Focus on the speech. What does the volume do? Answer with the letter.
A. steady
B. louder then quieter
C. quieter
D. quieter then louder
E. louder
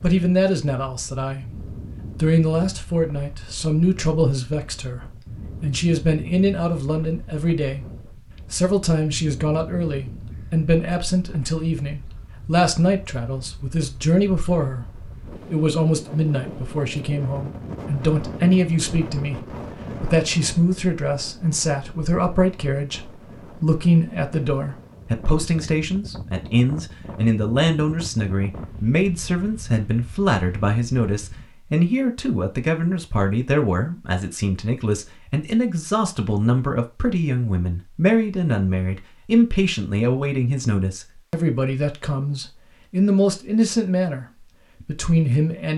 A.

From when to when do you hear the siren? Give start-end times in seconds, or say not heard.
not heard.